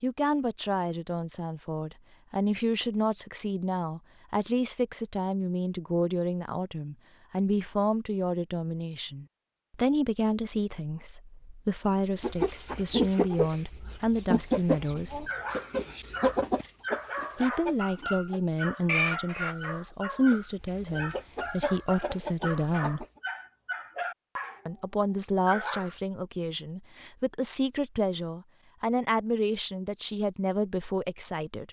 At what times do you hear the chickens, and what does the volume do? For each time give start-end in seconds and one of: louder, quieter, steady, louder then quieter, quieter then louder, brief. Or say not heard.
12.2-19.6 quieter then louder
20.3-23.2 brief.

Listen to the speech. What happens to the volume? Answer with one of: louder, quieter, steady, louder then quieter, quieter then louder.
steady.